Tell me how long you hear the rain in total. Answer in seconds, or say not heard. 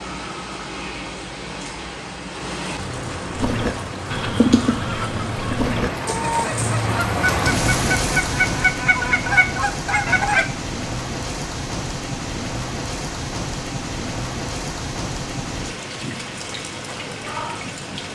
18 s.